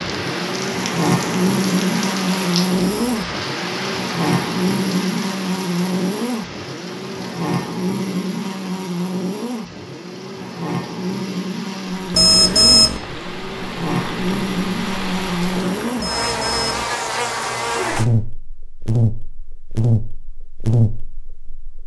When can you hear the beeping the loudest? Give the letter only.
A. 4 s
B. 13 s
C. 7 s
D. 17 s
B.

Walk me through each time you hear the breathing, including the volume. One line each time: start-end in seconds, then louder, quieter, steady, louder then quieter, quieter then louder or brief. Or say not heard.
not heard.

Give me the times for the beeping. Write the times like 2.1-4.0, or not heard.
2.8-3.2, 12.1-13.0, 16.0-16.9.